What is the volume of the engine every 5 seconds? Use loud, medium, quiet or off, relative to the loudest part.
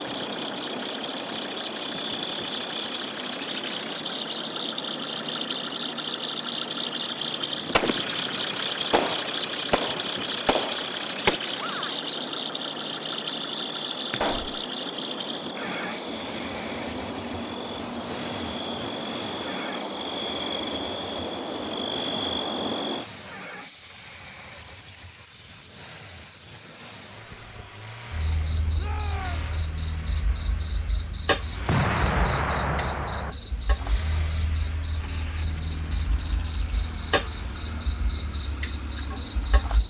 loud, loud, loud, medium, quiet, quiet, quiet, quiet.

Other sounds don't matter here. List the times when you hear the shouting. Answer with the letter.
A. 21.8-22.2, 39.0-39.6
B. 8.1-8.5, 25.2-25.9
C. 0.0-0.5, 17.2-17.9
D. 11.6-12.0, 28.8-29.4
D.